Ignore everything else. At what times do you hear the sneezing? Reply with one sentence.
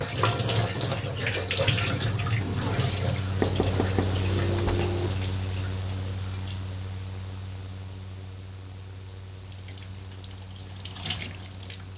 The sneezing can't be heard in this clip.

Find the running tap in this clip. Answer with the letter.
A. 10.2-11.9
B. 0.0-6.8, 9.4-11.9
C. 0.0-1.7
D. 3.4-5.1
B.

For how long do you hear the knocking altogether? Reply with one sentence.
You can hear the knocking for 2 seconds altogether.